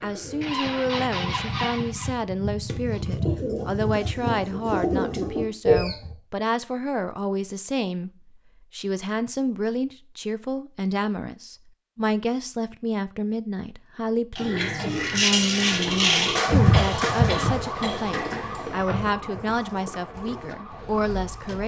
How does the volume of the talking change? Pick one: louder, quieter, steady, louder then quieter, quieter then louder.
steady.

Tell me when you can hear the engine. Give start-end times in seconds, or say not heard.
0.0-2.2.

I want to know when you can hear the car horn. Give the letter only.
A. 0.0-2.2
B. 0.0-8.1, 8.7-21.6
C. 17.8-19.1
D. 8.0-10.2
C.